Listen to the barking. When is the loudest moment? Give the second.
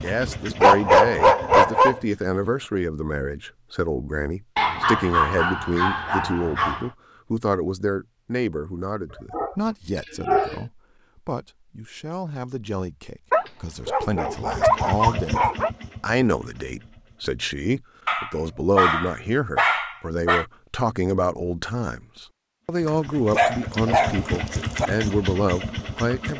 1 s.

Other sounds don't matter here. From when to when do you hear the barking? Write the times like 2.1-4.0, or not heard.
0.1-2.0, 4.5-6.9, 9.3-10.6, 13.3-15.7, 18.1-20.4, 22.9-24.9.